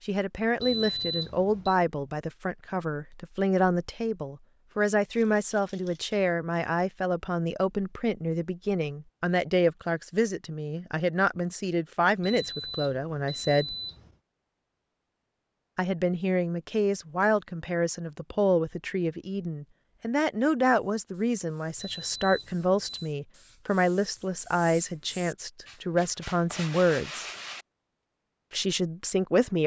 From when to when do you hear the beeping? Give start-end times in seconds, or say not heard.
0.6-1.8, 12.2-14.2, 21.8-23.1.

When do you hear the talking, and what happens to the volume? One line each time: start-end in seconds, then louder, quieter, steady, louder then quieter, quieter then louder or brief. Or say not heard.
0.1-13.8 steady
15.8-27.2 steady
28.5-29.6 brief.